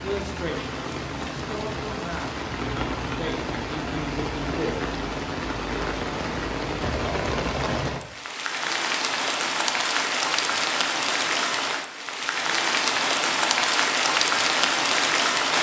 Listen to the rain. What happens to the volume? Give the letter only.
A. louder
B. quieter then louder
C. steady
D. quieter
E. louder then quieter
A.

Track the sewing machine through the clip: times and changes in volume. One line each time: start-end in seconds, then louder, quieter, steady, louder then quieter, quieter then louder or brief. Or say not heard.
not heard.